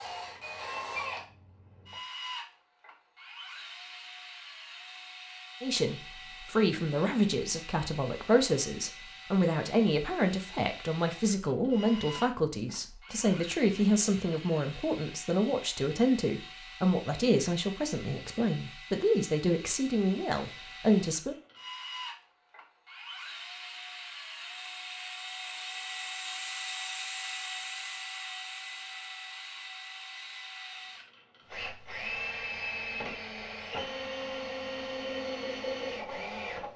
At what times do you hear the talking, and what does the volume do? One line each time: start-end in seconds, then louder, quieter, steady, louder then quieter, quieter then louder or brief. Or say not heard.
5.6-21.4 steady.